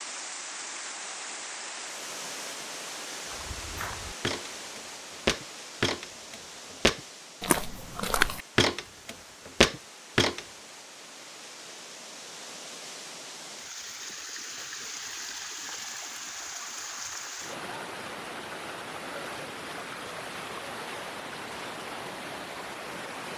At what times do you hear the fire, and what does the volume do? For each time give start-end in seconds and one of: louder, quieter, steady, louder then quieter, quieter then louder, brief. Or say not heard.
not heard.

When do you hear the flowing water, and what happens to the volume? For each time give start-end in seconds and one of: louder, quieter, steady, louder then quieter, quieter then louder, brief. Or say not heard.
0.0-23.3 quieter then louder.